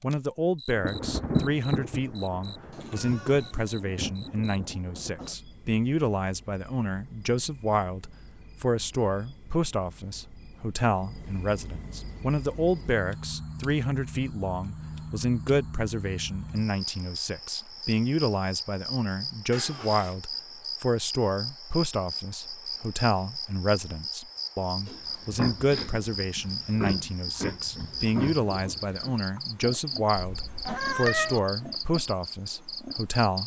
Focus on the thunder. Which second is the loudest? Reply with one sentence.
The loudest moment of the thunder is at 1 second.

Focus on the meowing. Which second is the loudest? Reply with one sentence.
The loudest moment of the meowing is at 31 seconds.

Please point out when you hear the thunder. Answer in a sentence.
The thunder can be heard from 0.7 to 5.3 s.